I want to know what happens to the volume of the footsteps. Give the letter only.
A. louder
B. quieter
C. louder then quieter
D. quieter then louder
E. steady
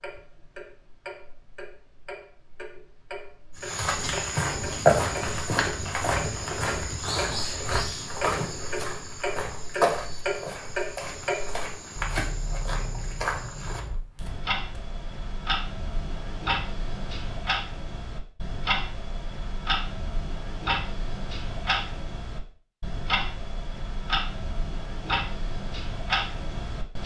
B.